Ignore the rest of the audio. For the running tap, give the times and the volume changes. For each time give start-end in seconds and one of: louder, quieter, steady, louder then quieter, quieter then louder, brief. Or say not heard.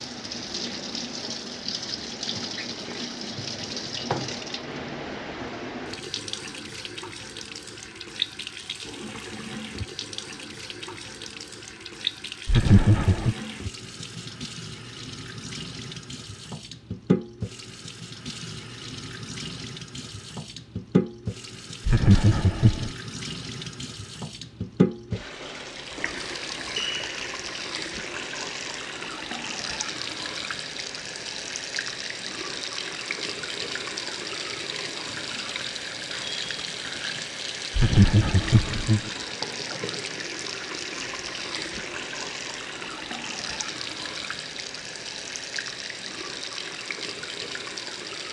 0.0-48.2 steady.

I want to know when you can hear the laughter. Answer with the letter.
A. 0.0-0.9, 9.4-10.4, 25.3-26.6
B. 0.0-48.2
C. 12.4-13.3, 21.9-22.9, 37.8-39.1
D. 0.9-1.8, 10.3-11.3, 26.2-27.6
C.